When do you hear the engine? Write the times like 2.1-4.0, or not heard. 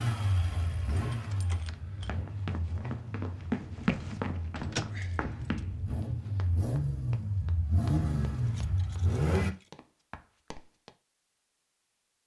0.0-9.6.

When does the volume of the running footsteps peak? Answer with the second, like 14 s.
4 s.